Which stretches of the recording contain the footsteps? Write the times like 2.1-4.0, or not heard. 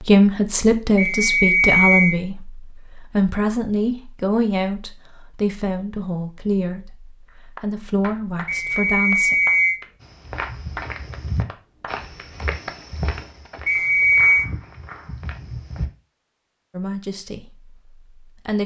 10.0-15.8.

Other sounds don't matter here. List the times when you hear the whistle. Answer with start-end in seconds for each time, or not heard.
0.9-2.2, 8.4-9.8, 13.7-14.4.